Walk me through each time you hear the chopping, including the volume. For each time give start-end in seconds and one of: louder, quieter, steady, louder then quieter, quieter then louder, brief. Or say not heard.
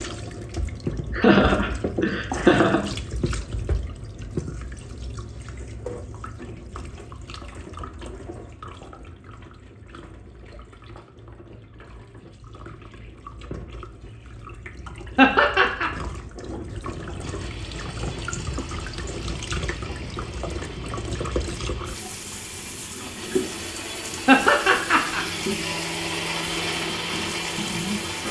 not heard.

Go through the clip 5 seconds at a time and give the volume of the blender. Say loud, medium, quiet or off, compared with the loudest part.
off, off, off, quiet, medium, loud.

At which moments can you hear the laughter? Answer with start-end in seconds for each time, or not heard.
1.1-2.9, 15.2-15.9, 24.2-25.2.